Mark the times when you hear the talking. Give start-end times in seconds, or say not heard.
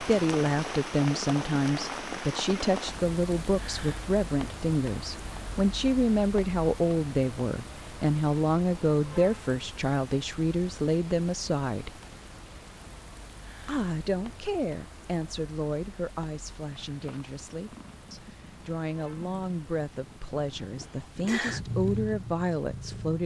0.0-12.0, 13.7-23.2.